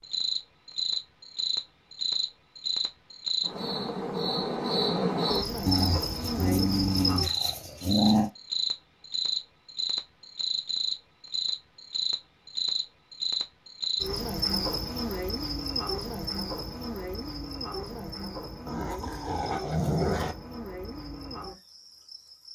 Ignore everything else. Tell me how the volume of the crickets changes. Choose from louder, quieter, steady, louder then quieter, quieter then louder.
quieter.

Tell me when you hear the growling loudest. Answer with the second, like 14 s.
8 s.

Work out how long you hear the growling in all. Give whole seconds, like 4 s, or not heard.
4 s.